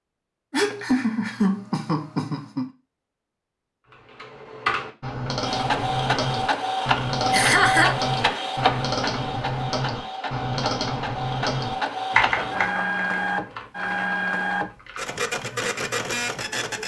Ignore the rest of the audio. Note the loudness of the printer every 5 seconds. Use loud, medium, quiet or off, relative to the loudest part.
off, loud, loud, loud.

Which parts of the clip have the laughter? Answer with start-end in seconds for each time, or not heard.
0.5-2.6, 7.3-8.0, 12.3-13.0.